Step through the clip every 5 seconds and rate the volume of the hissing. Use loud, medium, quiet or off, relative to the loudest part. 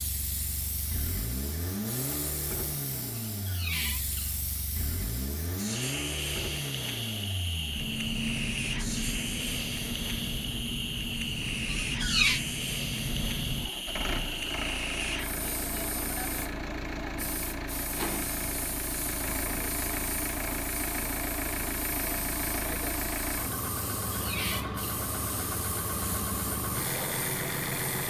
medium, loud, loud, medium, medium, medium.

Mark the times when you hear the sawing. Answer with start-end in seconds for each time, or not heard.
not heard.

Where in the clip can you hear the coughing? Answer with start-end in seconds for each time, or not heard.
not heard.